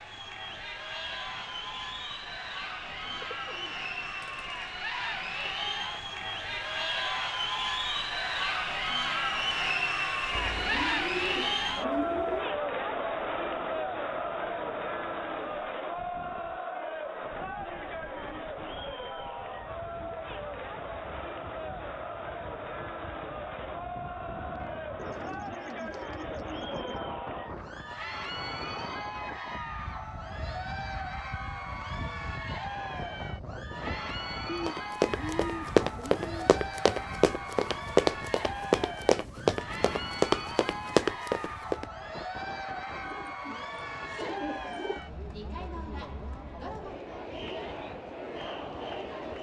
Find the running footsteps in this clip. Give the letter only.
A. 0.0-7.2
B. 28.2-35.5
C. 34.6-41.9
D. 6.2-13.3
C.